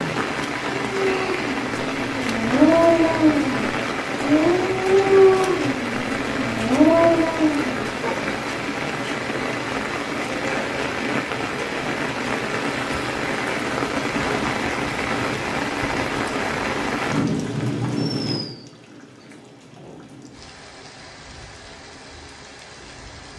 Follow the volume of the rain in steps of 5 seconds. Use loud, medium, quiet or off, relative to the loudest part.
loud, loud, loud, loud, quiet.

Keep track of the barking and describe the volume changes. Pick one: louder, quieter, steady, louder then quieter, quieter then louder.
louder.